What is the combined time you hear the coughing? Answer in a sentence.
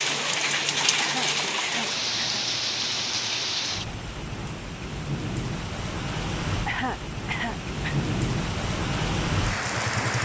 You can hear the coughing for 3 seconds altogether.